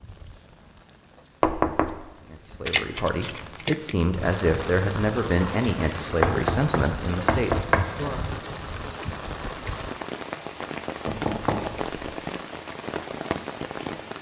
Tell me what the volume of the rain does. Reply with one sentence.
The loudness of the rain goes up.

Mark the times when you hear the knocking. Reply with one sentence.
You can hear the knocking from 1.4 to 2.0 s, from 6.0 to 8.0 s and from 11.1 to 11.9 s.